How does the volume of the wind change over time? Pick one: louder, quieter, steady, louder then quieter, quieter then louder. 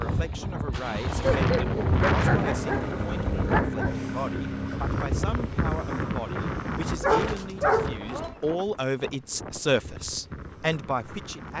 quieter.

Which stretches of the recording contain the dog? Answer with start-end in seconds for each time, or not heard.
1.2-4.0, 6.9-8.3.